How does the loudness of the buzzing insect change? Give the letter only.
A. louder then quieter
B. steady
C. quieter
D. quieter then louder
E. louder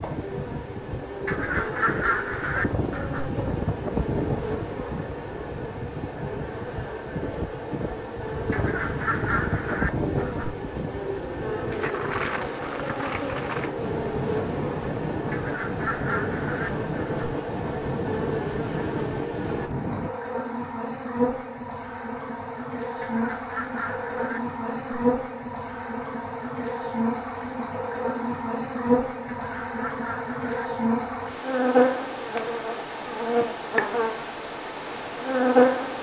E.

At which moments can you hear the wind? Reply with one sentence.
The wind can be heard from 0.0 to 20.1 s.